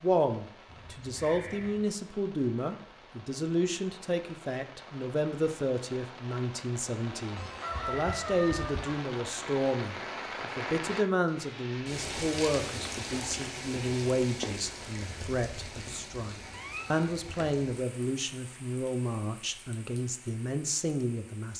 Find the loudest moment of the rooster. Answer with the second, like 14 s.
8 s.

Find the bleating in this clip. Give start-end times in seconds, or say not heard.
not heard.